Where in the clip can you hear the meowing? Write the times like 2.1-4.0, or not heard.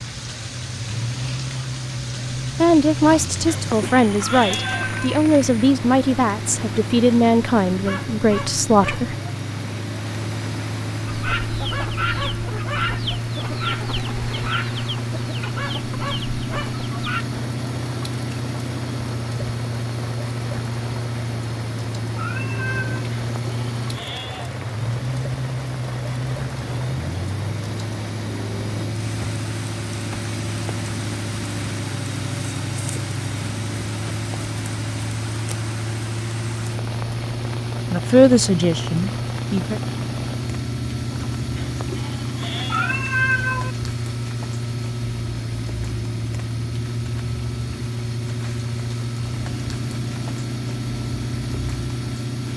4.4-5.0, 22.1-23.1, 42.7-43.8.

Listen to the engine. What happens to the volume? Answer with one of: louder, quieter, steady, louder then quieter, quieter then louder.
steady.